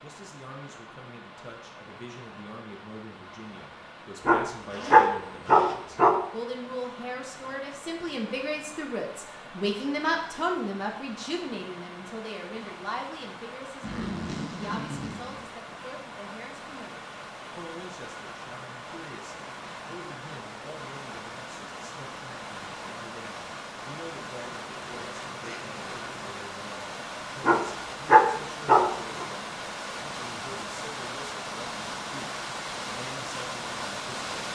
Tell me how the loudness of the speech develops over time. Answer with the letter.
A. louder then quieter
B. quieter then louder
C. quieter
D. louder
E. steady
A.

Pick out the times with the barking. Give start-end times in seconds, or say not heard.
4.2-6.2, 27.4-29.2.